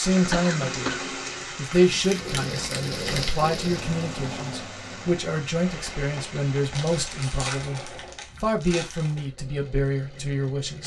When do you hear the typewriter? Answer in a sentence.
You can't hear the typewriter here.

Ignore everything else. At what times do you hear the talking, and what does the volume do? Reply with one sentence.
The talking can be heard briefly from 0.0 to 0.9 s; and from 1.6 to 10.8 s, at a steady volume.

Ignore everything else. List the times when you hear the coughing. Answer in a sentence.
The coughing can be heard from 0.3 to 1.1 s.